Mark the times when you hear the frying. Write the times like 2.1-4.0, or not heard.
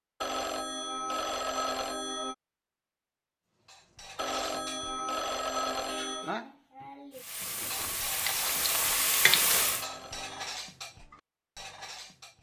7.1-9.8.